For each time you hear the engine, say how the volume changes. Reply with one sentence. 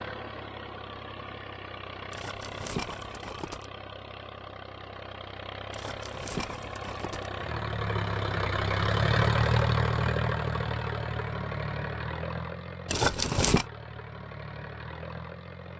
You can hear the engine from 0.0 to 15.7 s, getting louder then quieter.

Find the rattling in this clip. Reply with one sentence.
The rattling can be heard from 2.1 to 3.6 s, from 5.7 to 7.3 s and from 12.8 to 13.7 s.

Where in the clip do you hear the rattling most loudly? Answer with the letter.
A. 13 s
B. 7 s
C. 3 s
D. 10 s
A.